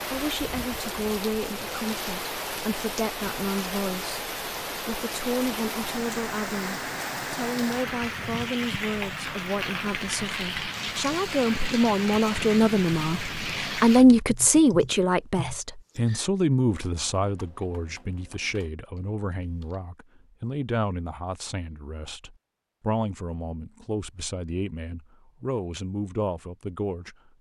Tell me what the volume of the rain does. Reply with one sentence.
The loudness of the rain stays about the same.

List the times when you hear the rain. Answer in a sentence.
The rain can be heard from 0.0 to 14.1 s.